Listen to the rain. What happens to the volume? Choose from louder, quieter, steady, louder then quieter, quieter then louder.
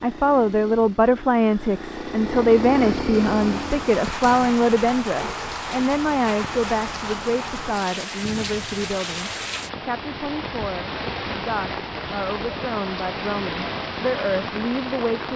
steady.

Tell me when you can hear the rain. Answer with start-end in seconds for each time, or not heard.
3.1-15.3.